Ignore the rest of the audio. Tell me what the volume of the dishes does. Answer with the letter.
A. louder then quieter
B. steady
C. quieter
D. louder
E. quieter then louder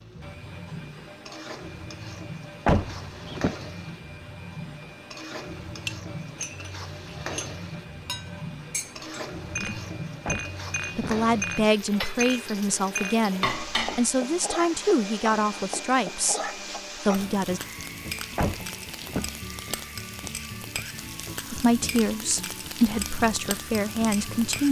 D.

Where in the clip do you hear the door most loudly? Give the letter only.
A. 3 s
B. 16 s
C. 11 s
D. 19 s
A.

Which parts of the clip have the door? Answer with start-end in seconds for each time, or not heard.
2.6-3.5, 10.2-11.2, 18.4-19.4.